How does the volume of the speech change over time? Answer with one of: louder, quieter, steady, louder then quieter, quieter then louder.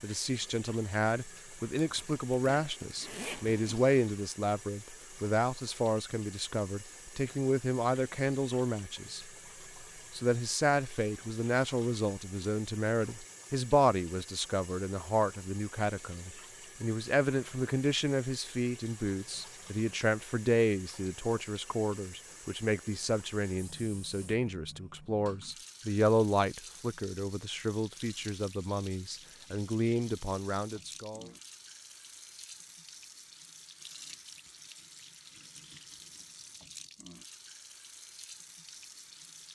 steady.